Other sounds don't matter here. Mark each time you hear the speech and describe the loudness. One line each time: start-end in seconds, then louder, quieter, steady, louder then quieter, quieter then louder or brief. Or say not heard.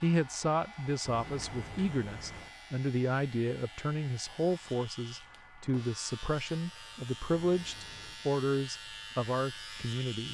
0.0-10.2 steady.